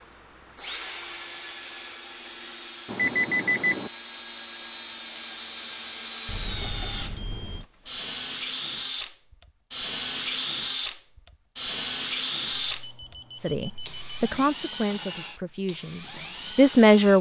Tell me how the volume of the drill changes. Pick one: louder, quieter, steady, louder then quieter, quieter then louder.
louder.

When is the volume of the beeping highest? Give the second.
3 s.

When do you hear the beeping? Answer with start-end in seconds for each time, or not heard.
2.9-3.9, 6.2-7.7, 12.5-14.4.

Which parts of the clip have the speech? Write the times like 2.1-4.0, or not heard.
13.4-17.1.